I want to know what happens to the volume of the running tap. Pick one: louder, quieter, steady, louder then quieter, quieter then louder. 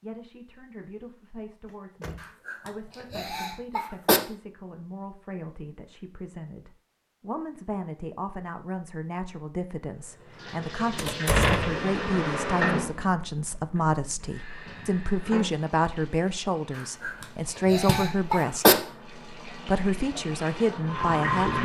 quieter then louder.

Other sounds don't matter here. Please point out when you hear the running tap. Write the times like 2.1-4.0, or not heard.
10.2-21.6.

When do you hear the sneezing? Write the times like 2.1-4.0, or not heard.
2.2-4.2, 16.8-18.8.